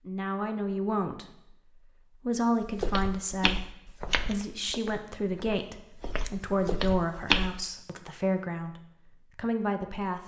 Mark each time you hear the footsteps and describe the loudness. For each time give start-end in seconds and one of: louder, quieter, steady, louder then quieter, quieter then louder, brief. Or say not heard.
2.6-7.6 quieter then louder.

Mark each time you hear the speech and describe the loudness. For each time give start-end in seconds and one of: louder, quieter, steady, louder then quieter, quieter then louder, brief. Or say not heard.
0.1-10.2 steady.